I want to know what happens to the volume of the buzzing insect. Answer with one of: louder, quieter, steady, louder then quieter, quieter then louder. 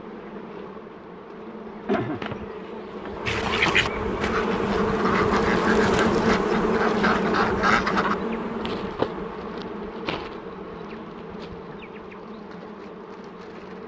louder then quieter.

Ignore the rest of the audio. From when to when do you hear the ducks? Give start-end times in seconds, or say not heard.
3.2-8.2.